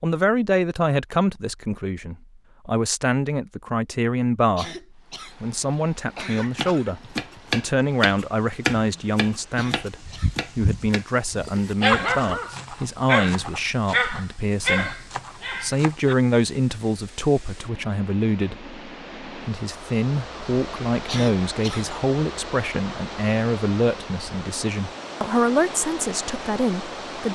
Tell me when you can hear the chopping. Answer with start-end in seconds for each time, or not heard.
6.5-15.9.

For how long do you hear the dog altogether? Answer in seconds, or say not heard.
6 s.